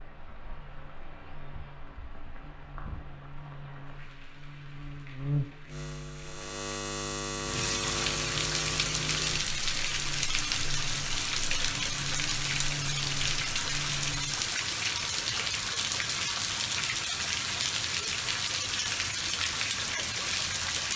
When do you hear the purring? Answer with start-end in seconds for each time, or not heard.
not heard.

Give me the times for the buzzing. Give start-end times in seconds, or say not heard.
0.0-14.6.